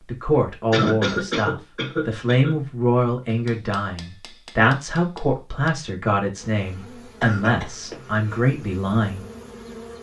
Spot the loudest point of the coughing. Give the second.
1 s.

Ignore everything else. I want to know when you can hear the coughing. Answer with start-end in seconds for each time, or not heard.
0.7-2.5, 7.2-8.4.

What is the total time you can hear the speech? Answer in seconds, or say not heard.
9 s.